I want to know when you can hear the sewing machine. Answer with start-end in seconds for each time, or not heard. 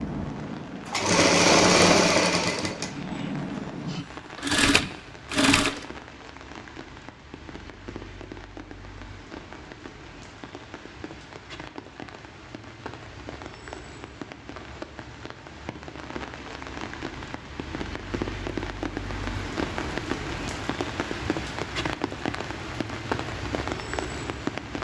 0.0-5.8.